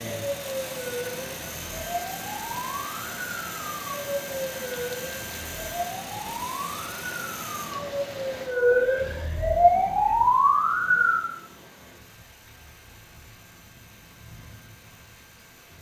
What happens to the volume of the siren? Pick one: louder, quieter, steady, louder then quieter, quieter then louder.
louder.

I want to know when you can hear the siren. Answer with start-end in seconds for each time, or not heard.
0.1-11.2.